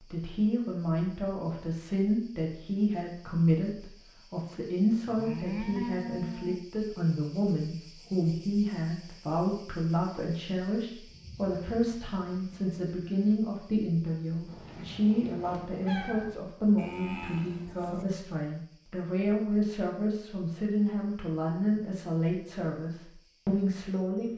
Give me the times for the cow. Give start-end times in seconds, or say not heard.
5.0-6.6, 11.1-13.4, 16.8-18.1.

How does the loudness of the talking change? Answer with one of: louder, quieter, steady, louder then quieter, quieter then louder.
steady.